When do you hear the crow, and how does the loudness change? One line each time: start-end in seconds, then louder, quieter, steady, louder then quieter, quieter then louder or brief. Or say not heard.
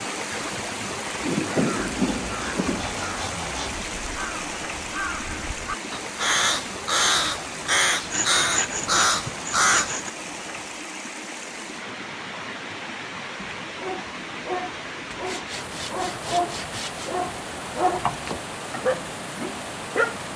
0.3-9.9 louder.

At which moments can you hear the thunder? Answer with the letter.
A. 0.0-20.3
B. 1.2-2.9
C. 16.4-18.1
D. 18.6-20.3
B.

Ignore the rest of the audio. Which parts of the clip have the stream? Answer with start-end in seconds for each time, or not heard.
0.0-20.3.